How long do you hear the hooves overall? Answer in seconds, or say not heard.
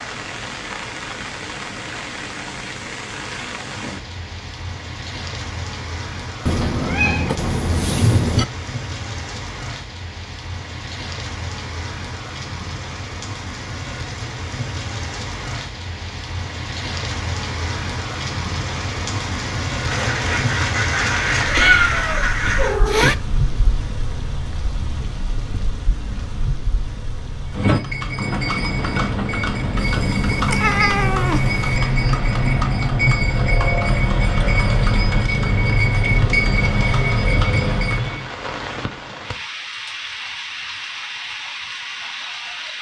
11 s.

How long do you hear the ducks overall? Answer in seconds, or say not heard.
3 s.